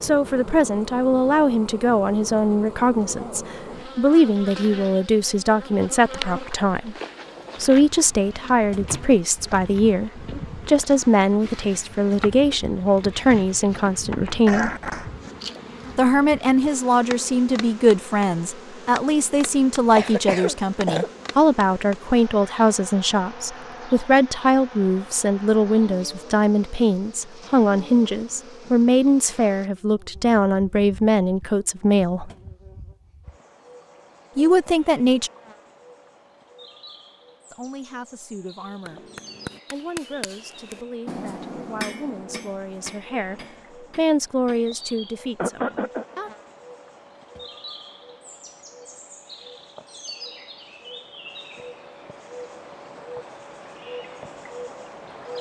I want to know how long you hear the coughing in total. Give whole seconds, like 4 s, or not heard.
3 s.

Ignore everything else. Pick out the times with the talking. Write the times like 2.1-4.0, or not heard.
0.0-7.0, 7.6-14.7, 15.9-32.3, 34.4-35.3, 37.5-39.0, 39.7-46.3.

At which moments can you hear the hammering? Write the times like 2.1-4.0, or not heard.
38.8-44.8.